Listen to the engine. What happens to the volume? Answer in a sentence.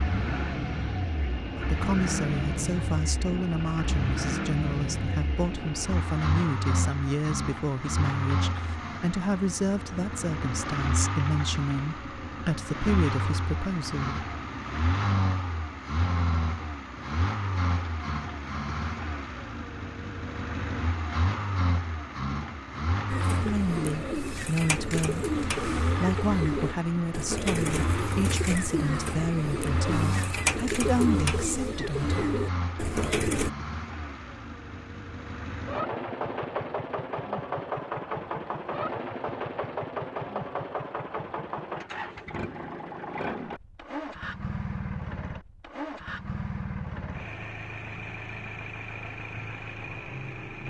The loudness of the engine stays about the same.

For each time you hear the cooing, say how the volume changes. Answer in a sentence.
The cooing can be heard from 23.1 to 33.5 s, at a steady volume.